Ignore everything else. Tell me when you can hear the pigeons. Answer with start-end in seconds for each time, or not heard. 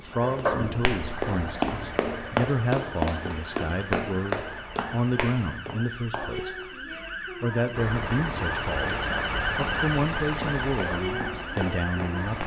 not heard.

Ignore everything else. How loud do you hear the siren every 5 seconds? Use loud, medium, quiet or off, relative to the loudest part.
medium, loud, loud.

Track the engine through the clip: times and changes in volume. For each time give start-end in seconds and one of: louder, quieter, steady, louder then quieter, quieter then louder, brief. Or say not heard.
0.0-5.6 quieter
7.8-12.4 quieter.